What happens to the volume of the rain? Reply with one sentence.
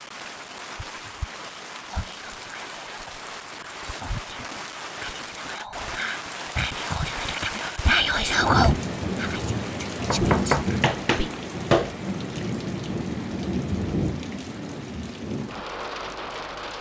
The volume of the rain goes up.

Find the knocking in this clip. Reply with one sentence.
The knocking can be heard from 10.0 to 11.9 s.